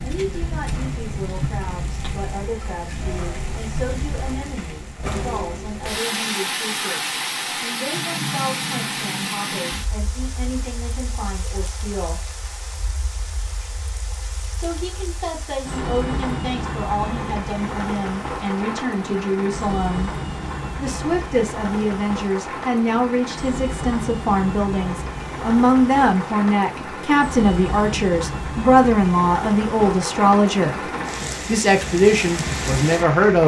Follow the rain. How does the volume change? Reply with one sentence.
The loudness of the rain stays about the same.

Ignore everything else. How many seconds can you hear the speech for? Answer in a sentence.
You can hear the speech for 30 seconds altogether.